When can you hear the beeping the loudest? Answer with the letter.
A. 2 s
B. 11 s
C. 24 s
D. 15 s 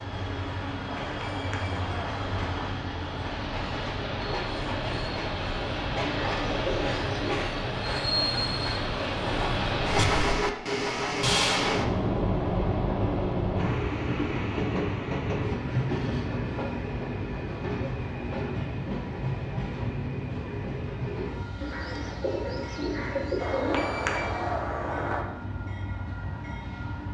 C.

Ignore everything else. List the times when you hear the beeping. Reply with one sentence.
The beeping can be heard from 1.0 to 2.7 s and from 23.4 to 25.2 s.